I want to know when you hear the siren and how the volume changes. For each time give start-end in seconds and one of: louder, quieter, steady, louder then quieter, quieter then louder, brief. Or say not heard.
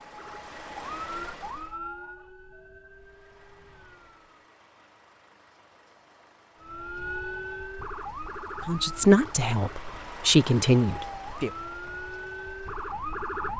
0.0-4.4 quieter
6.6-13.5 quieter then louder.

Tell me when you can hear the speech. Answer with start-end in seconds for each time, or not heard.
8.7-11.5.